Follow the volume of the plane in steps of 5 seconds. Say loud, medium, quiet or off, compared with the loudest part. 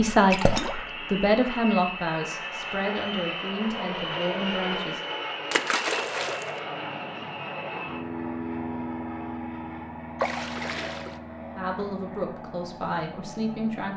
loud, loud, medium.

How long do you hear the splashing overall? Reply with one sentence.
The splashing can be heard for 3 seconds in total.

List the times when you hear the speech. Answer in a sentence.
You can hear the speech from 0.0 to 5.0 s and from 11.6 to 13.9 s.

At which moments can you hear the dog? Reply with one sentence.
You can't hear the dog here.